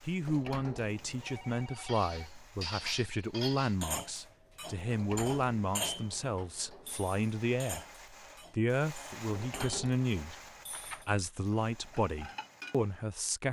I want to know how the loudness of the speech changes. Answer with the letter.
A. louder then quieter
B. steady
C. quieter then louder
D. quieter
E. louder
B.